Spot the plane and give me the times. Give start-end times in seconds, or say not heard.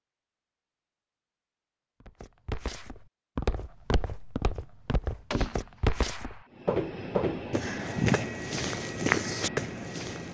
6.5-10.2.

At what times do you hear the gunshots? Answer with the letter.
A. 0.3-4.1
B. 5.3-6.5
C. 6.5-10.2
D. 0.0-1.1
B.